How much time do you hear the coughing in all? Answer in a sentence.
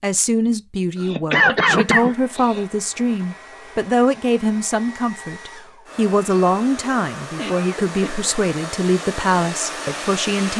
The coughing can be heard for 3 seconds in total.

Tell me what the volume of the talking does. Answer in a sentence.
The loudness of the talking stays about the same.